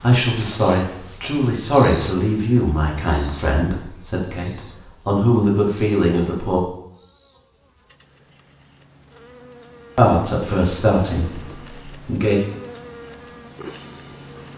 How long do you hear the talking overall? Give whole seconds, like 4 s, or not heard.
9 s.